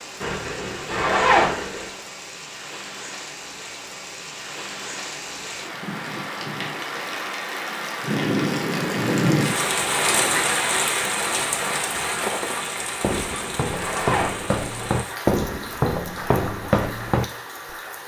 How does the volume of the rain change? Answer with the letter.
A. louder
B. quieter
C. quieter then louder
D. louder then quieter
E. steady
D.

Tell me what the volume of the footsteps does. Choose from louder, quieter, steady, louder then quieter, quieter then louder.
louder.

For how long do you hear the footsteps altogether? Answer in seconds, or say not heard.
6 s.